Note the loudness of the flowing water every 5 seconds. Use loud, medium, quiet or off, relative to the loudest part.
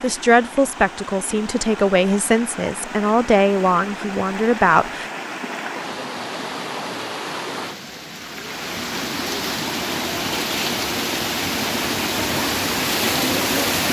medium, medium, loud.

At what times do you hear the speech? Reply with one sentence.
You can hear the speech from 0.0 to 5.1 s.